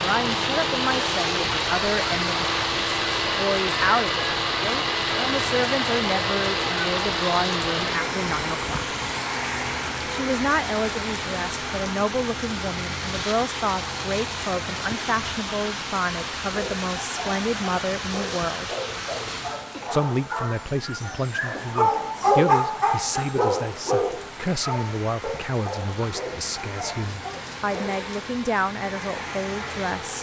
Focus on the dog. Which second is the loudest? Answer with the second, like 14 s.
22 s.